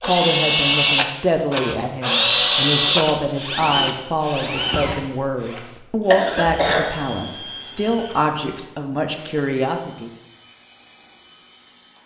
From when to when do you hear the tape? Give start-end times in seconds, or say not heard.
not heard.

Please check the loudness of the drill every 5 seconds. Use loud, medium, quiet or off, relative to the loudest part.
loud, quiet, quiet.